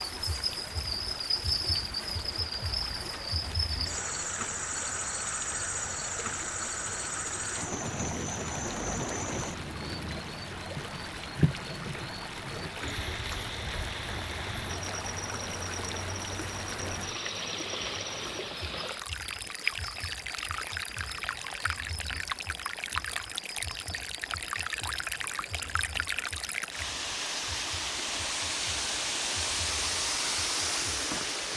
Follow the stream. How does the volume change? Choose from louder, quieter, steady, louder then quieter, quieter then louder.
louder.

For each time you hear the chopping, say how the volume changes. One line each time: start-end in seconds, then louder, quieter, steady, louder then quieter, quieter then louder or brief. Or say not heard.
not heard.